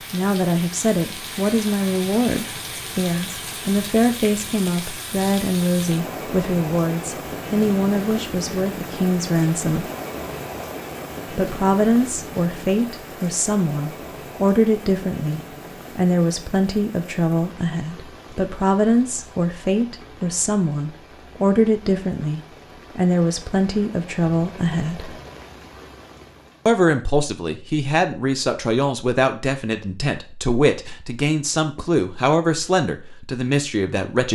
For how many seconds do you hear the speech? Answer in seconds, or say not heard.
31 s.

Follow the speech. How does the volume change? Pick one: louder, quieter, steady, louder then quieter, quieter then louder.
steady.